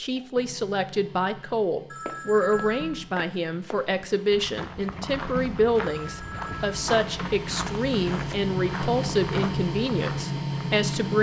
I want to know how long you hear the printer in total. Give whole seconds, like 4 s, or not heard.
11 s.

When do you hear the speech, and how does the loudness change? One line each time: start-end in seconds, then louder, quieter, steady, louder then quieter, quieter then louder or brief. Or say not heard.
0.0-11.1 steady.